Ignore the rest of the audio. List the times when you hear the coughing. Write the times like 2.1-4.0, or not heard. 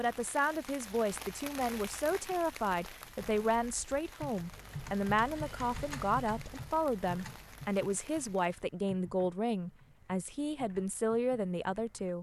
not heard.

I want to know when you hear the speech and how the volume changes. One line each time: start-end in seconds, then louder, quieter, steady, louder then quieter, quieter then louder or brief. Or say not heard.
0.0-12.1 steady.